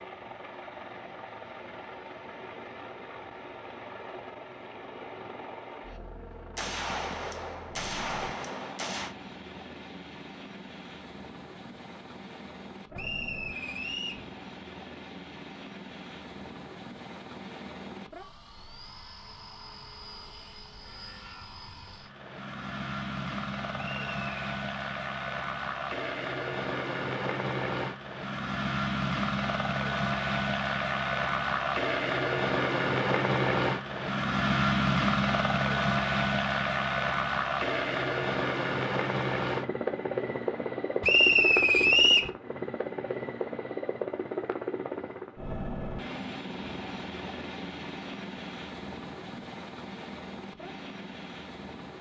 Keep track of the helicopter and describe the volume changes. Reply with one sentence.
The volume of the helicopter goes up, then down.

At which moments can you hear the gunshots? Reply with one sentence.
You can hear the gunshots from 6.5 to 9.2 s.